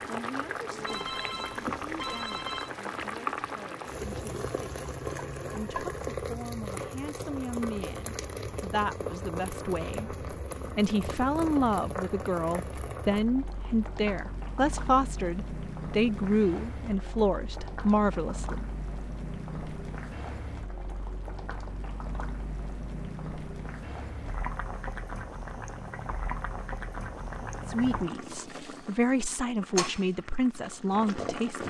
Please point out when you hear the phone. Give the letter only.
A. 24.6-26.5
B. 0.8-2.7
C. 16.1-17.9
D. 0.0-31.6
B.